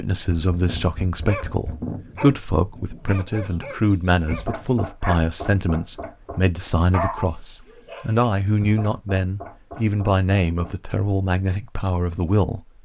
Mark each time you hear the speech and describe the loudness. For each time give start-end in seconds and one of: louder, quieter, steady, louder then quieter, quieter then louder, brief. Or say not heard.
0.0-12.6 steady.